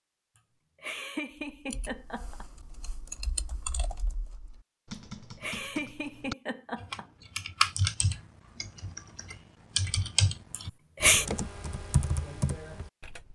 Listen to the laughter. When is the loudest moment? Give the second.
11 s.